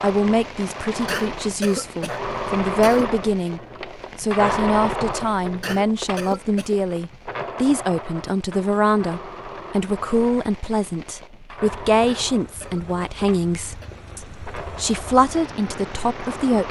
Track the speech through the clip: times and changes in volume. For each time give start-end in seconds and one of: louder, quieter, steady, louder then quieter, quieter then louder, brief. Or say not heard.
0.0-16.6 steady.